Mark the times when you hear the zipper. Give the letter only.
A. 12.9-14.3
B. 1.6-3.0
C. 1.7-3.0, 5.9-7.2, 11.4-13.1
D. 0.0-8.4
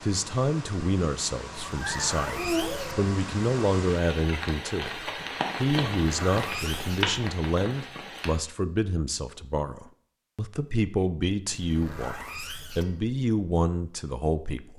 C.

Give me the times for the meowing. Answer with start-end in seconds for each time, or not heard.
1.6-3.0.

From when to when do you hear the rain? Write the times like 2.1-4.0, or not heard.
0.0-8.4.